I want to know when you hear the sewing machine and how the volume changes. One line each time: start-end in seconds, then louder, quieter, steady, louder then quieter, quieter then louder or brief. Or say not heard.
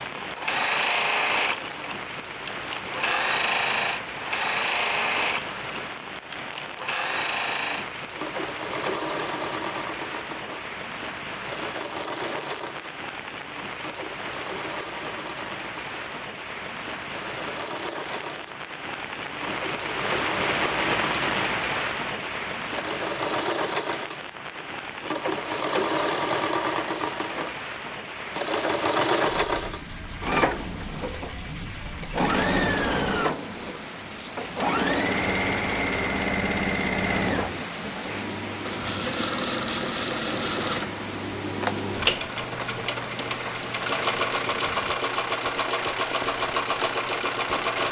0.0-47.8 quieter then louder.